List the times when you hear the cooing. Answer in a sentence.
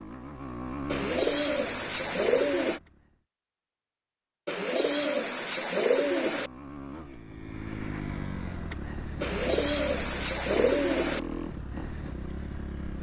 The cooing can be heard from 0.8 to 2.8 s, from 4.5 to 6.5 s and from 9.2 to 11.2 s.